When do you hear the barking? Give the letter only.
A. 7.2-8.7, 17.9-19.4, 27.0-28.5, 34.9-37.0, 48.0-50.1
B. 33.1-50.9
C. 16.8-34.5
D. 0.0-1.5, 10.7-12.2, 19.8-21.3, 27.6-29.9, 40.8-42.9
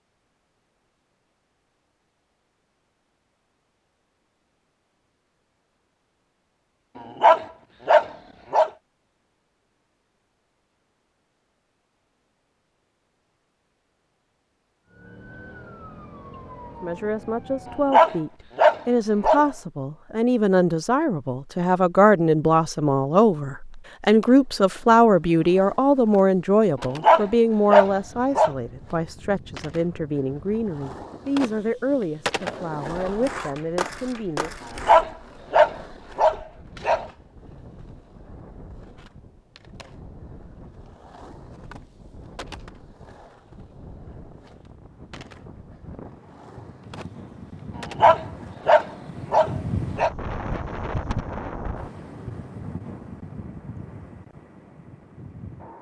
A.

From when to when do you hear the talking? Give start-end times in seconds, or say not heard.
16.8-34.5.